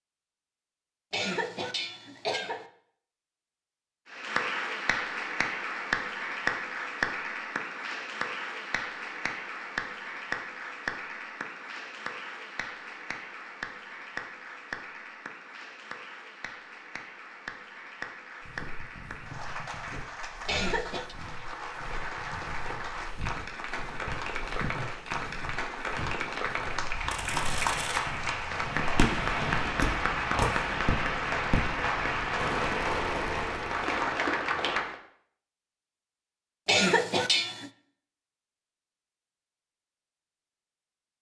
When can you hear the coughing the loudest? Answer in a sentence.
The loudest moment of the coughing is at 37 seconds.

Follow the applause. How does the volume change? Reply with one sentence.
The loudness of the applause goes down, then up.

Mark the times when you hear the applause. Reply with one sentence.
You can hear the applause from 4.1 to 35.0 s.